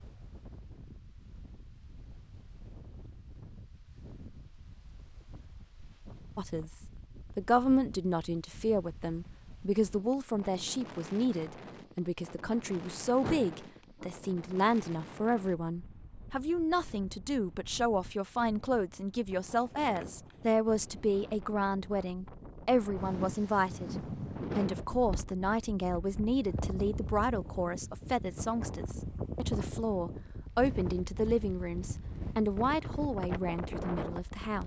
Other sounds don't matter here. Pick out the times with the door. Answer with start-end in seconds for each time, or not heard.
13.2-14.1.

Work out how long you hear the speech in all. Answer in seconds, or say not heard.
28 s.